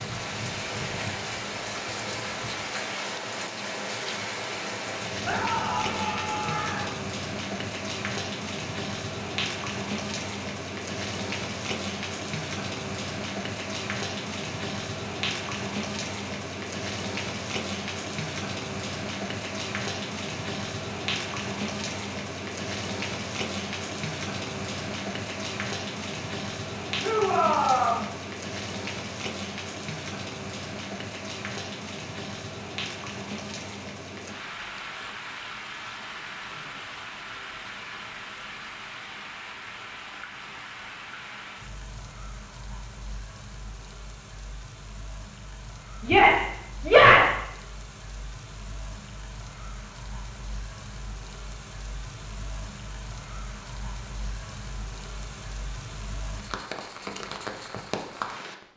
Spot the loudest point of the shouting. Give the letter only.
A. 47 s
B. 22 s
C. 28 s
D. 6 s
A.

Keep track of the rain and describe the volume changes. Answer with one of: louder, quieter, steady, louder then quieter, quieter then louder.
quieter.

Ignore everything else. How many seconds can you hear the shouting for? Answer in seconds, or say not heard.
4 s.